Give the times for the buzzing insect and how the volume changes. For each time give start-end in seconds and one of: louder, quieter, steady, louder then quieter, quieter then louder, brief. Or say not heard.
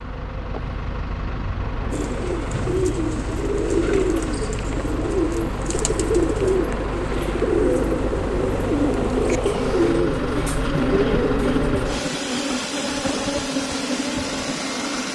0.0-15.1 louder.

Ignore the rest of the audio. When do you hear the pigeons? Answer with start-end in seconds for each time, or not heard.
1.9-11.9.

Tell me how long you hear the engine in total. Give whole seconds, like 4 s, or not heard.
15 s.